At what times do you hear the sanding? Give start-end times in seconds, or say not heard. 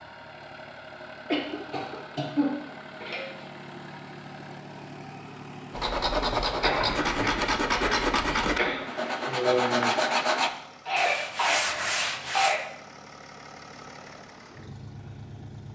5.7-12.6.